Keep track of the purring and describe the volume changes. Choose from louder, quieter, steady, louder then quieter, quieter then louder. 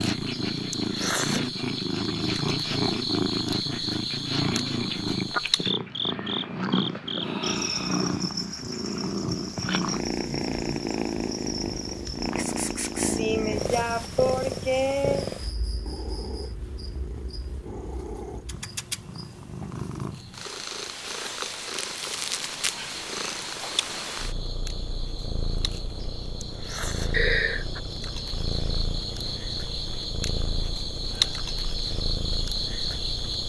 quieter.